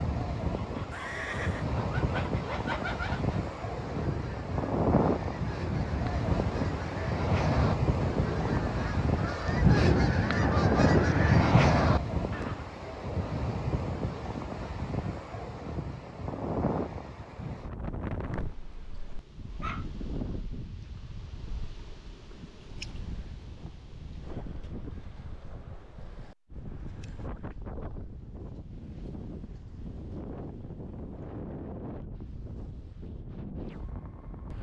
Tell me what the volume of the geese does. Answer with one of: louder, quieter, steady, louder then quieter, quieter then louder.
louder.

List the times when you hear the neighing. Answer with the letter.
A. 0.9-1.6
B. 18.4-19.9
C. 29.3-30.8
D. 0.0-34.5
A.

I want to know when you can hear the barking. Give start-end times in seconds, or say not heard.
18.4-19.9.